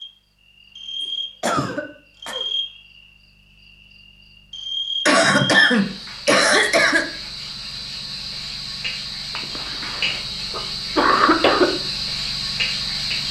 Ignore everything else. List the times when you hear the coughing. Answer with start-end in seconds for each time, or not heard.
1.4-2.5, 5.0-7.0, 9.3-11.7.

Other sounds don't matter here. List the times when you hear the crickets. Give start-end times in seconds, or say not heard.
0.0-13.2.